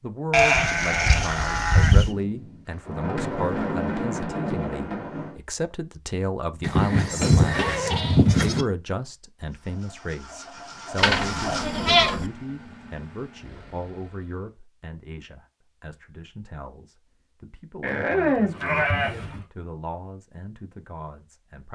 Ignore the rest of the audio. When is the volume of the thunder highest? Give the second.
4 s.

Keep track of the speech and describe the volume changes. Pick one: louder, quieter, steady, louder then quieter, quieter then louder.
quieter.